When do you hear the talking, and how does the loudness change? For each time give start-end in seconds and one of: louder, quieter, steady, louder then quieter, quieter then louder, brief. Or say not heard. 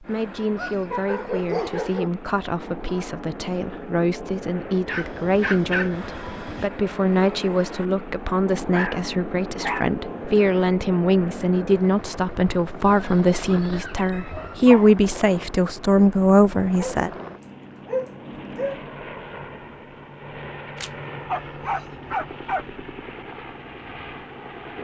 0.0-17.1 louder.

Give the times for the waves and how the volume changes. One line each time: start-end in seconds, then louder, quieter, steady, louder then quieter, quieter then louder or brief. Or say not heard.
not heard.